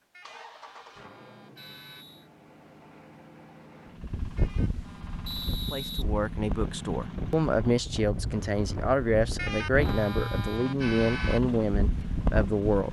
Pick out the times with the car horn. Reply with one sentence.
The car horn can be heard from 0.1 to 2.0 s, from 4.3 to 5.8 s and from 9.3 to 11.4 s.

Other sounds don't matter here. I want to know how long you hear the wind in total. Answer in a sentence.
The wind can be heard for 9 seconds in total.